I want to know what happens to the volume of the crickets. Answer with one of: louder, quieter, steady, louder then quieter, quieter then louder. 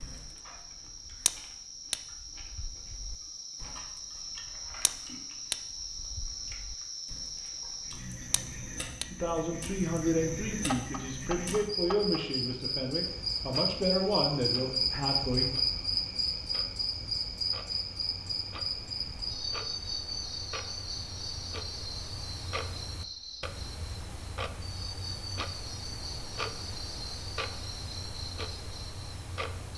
louder then quieter.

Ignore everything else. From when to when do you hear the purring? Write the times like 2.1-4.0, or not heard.
not heard.